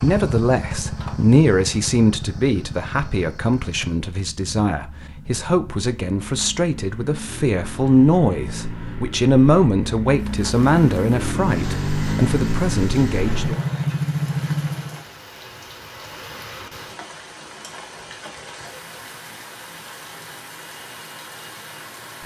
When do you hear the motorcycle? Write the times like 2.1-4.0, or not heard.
0.0-15.1.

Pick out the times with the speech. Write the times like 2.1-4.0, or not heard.
0.0-13.6.